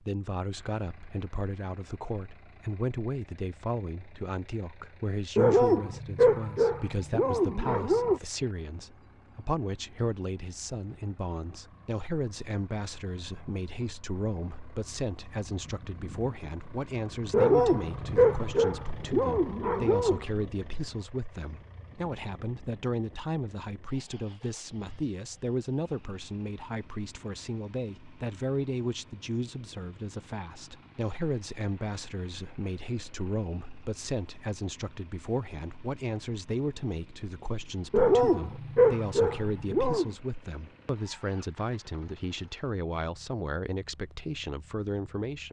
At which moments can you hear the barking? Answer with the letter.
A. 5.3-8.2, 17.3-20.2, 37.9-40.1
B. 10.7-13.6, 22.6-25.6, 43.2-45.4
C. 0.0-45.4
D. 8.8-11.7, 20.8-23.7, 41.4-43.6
A.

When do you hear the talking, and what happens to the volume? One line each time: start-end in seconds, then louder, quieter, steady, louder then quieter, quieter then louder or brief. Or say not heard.
0.0-45.4 steady.